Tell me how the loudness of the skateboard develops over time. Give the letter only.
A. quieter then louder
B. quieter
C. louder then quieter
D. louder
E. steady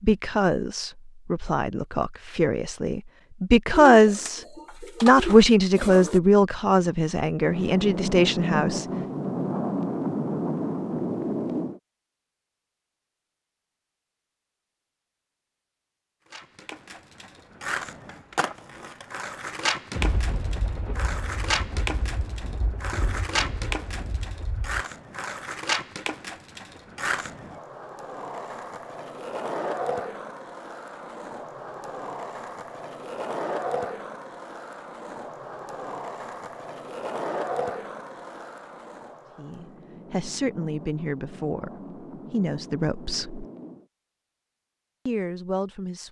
E.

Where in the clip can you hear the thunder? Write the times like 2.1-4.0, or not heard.
7.5-11.8, 19.9-24.8, 39.5-43.9.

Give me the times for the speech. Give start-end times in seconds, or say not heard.
0.0-8.8, 39.4-43.5, 45.0-46.0.